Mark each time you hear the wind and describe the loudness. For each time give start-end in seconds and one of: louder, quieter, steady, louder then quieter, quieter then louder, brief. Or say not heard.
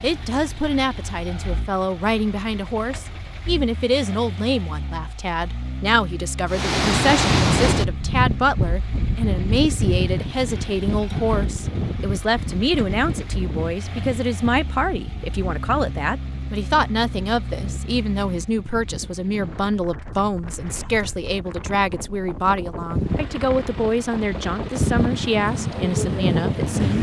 6.5-26.9 quieter then louder.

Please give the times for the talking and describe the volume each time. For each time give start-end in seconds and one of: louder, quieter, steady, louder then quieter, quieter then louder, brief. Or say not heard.
0.0-26.9 steady.